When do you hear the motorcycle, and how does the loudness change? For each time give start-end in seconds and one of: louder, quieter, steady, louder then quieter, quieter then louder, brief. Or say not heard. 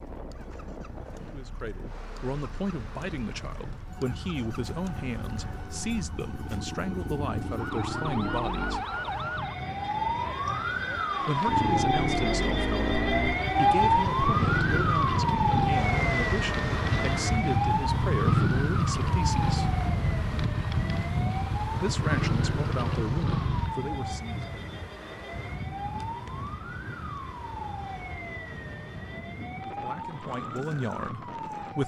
0.1-8.8 louder
11.4-23.8 steady.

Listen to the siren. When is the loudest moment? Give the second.
14 s.